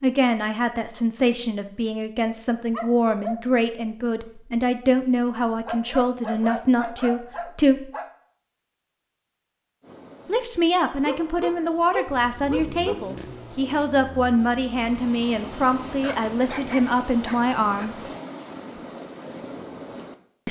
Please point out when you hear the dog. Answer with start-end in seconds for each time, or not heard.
2.2-3.4, 5.7-8.1, 11.0-13.0, 16.0-17.9.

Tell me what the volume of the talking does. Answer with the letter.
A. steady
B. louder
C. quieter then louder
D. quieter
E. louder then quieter
A.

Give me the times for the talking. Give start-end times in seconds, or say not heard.
0.0-7.9, 10.2-18.1.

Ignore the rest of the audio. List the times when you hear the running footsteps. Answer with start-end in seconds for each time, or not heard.
not heard.